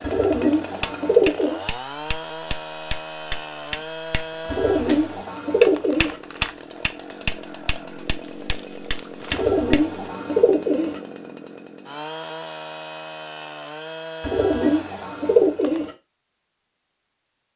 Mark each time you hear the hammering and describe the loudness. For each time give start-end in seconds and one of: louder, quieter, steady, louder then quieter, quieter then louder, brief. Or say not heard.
0.8-10.0 louder then quieter.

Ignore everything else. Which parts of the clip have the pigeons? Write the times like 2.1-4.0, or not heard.
0.0-1.6, 4.5-6.2, 9.3-11.0, 14.2-15.9.